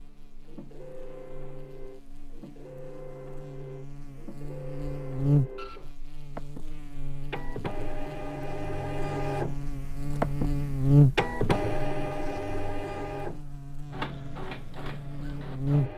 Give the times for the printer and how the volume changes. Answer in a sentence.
You can hear the printer from 0.0 to 15.9 s, getting louder then quieter.